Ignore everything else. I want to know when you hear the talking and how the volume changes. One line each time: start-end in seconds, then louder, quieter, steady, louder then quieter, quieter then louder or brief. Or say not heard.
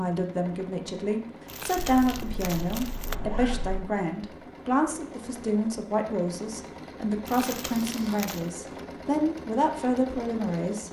0.0-10.8 steady.